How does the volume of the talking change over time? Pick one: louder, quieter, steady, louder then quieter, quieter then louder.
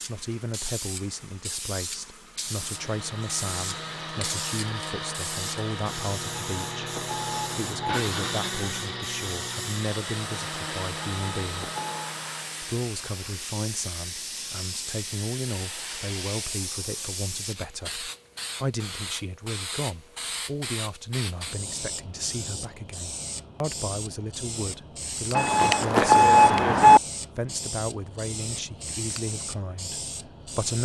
steady.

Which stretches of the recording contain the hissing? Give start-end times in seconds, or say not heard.
0.0-30.8.